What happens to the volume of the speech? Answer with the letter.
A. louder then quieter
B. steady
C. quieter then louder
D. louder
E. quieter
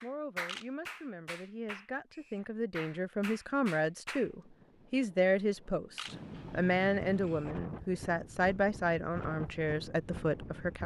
D.